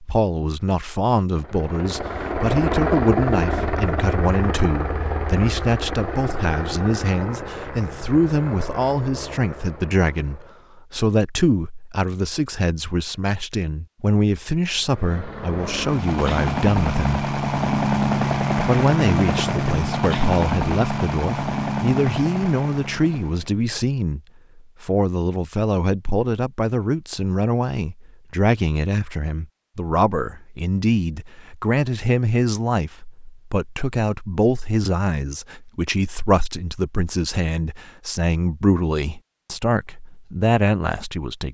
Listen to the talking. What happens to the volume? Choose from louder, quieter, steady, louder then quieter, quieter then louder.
steady.